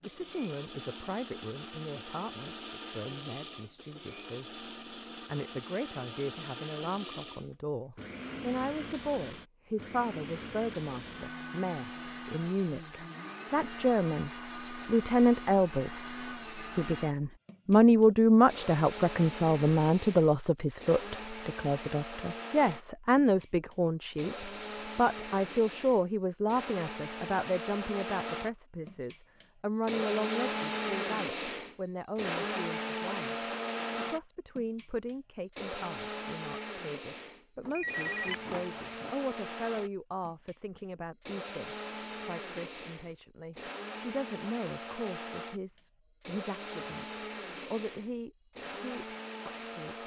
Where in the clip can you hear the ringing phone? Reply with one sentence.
The ringing phone can be heard from 37.6 to 39.1 s.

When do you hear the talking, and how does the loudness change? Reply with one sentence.
The talking can be heard from 0.1 to 4.7 s, getting quieter; from 5.2 to 15.9 s, getting louder; and from 16.6 to 50.0 s, getting quieter.